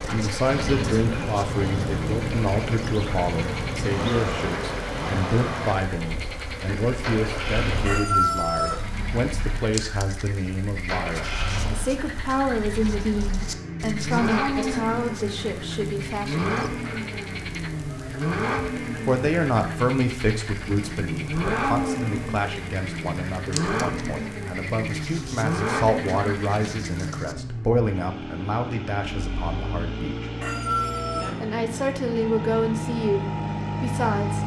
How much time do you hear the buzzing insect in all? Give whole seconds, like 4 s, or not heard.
8 s.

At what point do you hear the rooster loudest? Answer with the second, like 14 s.
8 s.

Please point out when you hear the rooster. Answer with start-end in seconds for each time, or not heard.
7.8-8.8, 30.4-31.4.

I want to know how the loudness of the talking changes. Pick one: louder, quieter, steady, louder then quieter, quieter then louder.
steady.